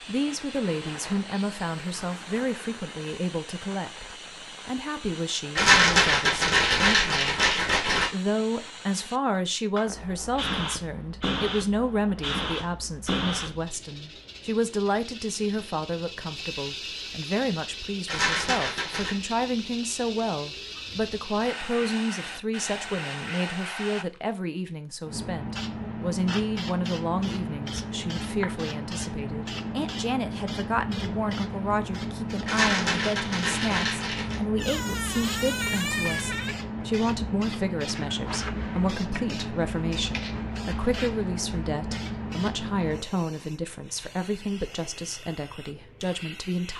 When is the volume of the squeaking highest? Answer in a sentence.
The loudest moment of the squeaking is at 36 seconds.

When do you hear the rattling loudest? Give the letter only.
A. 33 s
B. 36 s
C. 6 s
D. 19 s
C.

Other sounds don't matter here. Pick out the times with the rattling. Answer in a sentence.
You can hear the rattling from 5.5 to 8.1 s, from 18.1 to 19.1 s and from 32.5 to 34.4 s.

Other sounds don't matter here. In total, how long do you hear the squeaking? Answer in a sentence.
The squeaking can be heard for 2 seconds in total.